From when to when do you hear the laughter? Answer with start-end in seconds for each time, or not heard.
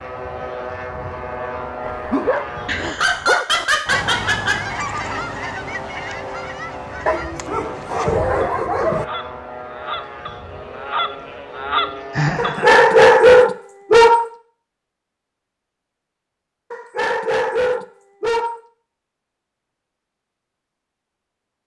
2.6-4.6, 12.1-13.1.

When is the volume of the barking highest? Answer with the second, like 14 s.
13 s.